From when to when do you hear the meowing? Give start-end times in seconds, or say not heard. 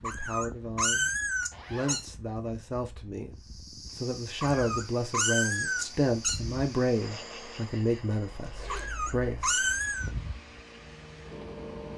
0.0-2.0, 4.4-6.4, 8.7-10.1.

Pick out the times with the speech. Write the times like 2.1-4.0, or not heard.
0.0-1.1, 1.7-10.1.